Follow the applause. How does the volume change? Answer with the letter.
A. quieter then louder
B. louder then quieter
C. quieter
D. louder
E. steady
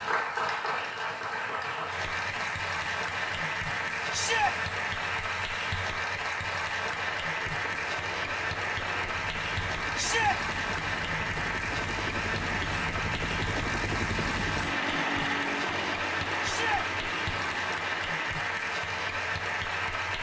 E.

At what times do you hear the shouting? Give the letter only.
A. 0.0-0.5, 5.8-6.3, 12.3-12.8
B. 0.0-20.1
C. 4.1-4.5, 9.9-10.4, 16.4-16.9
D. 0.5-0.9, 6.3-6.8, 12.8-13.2
C.